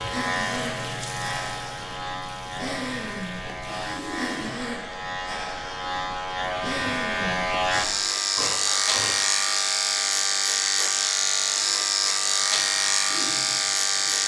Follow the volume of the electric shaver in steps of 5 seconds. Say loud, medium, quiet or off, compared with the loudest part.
medium, loud, loud.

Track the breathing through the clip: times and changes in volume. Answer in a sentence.
You can hear the breathing from 0.1 to 9.2 s, at a steady volume.